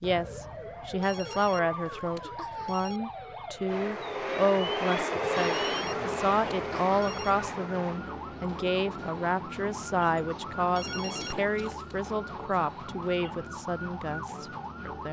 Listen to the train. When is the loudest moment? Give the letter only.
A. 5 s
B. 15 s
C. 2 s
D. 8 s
A.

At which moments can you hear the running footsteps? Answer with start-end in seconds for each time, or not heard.
not heard.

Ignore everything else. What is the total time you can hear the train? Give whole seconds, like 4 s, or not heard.
8 s.